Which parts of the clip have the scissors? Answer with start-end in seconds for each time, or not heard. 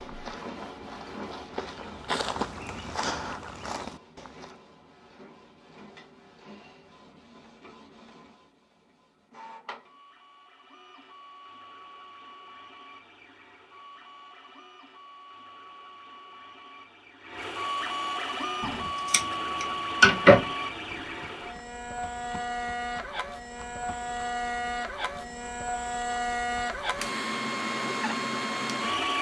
18.6-20.4.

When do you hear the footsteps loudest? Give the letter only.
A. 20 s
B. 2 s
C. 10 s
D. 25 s
B.